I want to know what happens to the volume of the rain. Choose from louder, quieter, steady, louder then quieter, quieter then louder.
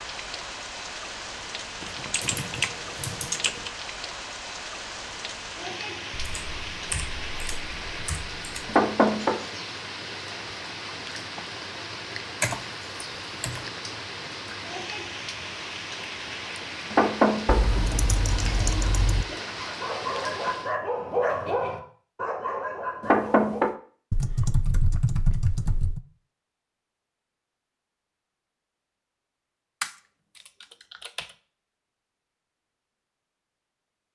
steady.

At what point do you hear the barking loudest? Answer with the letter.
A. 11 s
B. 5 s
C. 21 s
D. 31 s
C.